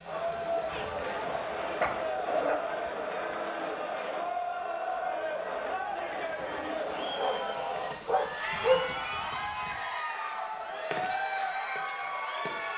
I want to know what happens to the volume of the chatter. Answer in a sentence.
The volume of the chatter stays about the same.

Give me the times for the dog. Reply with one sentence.
You can hear the dog from 1.0 to 2.6 s and from 7.2 to 8.9 s.